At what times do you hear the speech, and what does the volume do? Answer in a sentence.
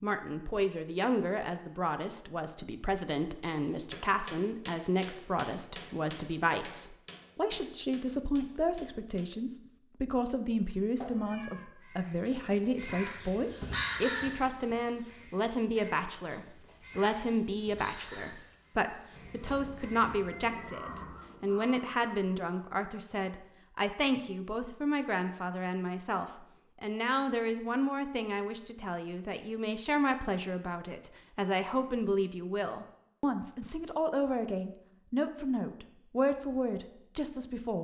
The speech can be heard from 0.0 to 37.7 s, at a steady volume.